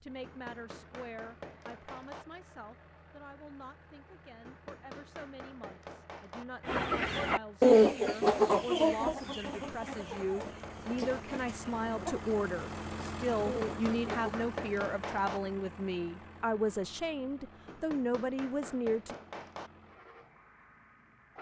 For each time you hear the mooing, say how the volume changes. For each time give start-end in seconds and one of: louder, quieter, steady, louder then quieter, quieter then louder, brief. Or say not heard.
not heard.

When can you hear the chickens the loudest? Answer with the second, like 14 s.
8 s.